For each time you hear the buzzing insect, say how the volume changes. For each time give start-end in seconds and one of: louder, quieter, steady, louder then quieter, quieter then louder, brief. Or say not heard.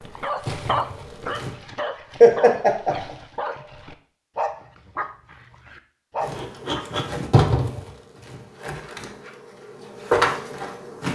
0.5-1.5 brief
6.2-11.1 quieter then louder.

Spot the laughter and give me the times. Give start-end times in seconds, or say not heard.
2.2-3.1.